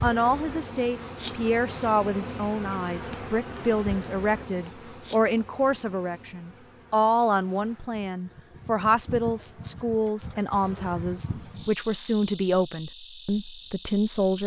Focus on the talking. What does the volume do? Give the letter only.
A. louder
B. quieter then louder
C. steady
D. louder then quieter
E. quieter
C.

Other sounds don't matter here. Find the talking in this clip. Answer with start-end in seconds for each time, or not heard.
0.0-14.4.